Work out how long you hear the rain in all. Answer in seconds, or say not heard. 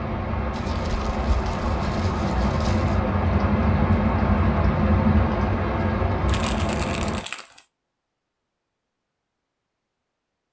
7 s.